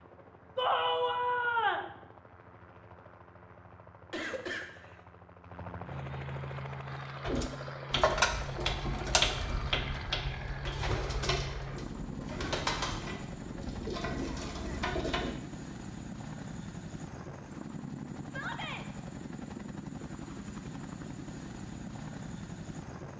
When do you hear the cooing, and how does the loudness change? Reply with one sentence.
The cooing can be heard from 7.2 to 15.3 s, getting quieter.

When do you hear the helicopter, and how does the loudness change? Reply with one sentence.
The helicopter can be heard from 0.0 to 23.1 s, getting louder.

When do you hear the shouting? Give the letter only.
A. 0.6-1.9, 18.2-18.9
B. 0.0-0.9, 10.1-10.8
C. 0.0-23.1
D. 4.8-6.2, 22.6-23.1
A.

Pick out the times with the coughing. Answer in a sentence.
You can hear the coughing from 4.1 to 5.0 s and from 14.2 to 14.9 s.